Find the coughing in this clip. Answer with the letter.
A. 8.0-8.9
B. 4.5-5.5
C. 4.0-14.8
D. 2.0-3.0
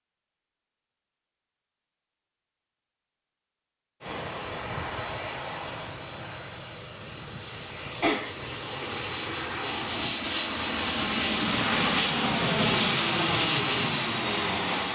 A.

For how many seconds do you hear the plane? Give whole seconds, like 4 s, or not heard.
11 s.